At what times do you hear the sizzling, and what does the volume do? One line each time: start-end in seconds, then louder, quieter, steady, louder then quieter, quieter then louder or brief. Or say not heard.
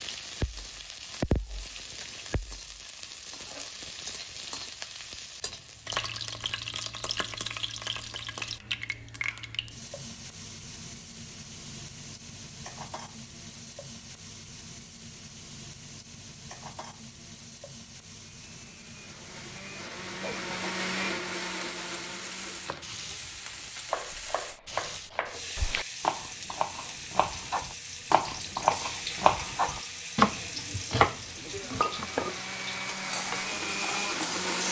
0.0-34.6 quieter then louder.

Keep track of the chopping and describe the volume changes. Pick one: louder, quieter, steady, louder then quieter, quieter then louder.
louder.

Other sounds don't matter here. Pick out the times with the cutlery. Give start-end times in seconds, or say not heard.
not heard.